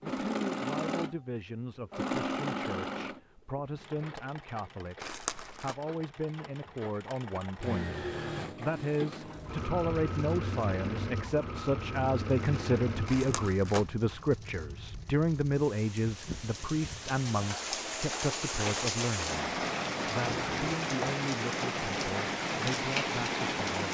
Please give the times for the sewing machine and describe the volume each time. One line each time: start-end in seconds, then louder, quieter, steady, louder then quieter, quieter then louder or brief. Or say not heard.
0.0-13.6 quieter then louder.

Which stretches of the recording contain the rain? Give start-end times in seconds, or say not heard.
9.2-23.8.